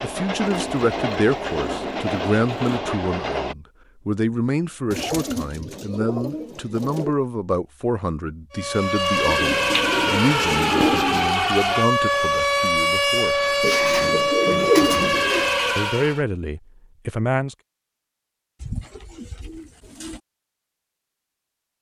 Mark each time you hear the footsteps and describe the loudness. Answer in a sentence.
The footsteps can't be heard in this clip.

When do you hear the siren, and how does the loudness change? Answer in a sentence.
You can hear the siren from 8.5 to 16.2 s, at a steady volume.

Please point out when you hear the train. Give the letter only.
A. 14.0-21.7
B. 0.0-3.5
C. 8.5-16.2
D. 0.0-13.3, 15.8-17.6
B.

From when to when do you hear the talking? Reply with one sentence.
The talking can be heard from 0.0 to 13.3 s and from 15.8 to 17.6 s.